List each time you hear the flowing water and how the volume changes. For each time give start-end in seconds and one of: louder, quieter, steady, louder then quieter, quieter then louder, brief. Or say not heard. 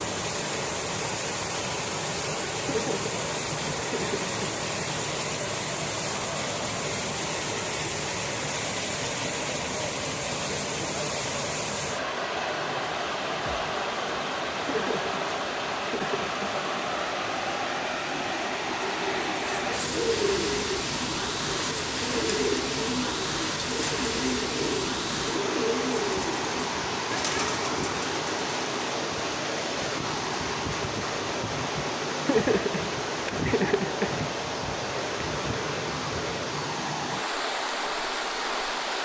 0.0-39.0 steady.